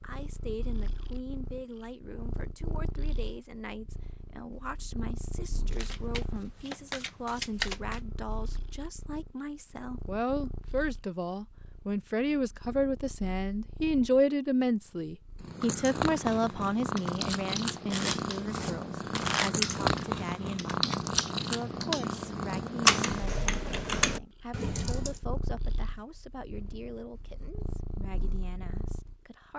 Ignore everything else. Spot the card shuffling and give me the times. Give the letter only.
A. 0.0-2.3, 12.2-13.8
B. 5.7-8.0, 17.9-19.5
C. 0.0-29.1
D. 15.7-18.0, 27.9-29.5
B.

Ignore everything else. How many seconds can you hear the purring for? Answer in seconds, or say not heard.
29 s.